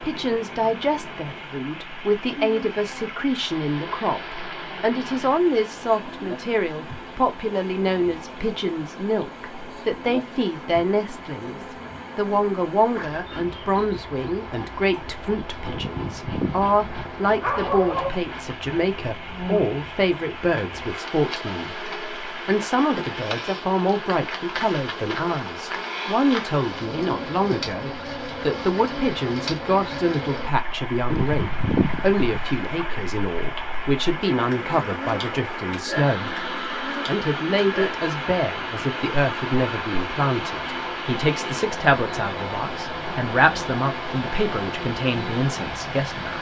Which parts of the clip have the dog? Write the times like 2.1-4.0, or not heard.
15.7-18.1, 31.1-32.9.